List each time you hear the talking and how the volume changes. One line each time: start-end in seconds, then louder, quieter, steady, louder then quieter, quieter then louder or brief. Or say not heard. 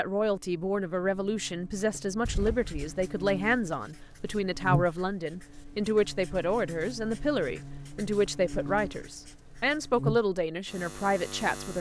0.0-11.7 steady.